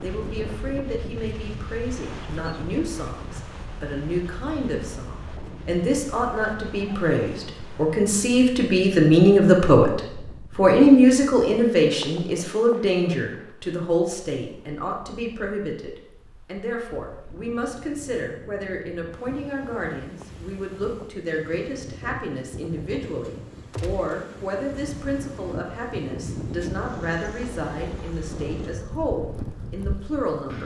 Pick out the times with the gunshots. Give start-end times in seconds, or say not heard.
23.7-24.1.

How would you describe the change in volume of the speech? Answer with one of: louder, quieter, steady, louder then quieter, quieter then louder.
louder then quieter.